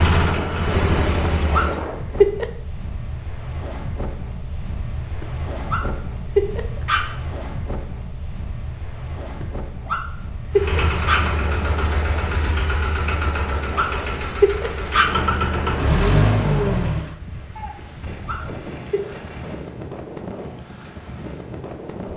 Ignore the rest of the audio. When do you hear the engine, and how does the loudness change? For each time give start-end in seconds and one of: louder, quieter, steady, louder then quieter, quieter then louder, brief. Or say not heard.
0.0-1.9 brief
10.5-17.1 louder.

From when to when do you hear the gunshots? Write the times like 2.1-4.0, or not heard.
17.6-19.6.